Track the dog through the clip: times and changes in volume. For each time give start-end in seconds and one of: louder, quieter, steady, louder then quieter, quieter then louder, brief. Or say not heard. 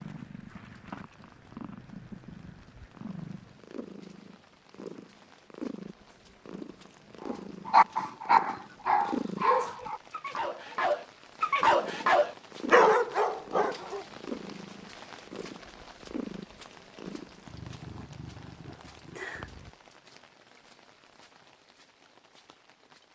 7.7-14.0 quieter then louder.